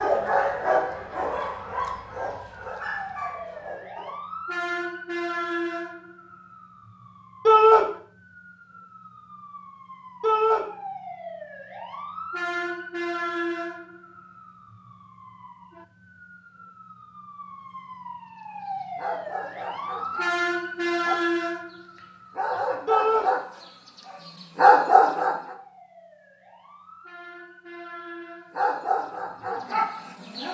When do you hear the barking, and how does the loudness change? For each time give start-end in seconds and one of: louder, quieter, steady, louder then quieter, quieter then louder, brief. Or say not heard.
0.0-4.2 quieter
18.6-25.6 louder
28.6-30.4 brief.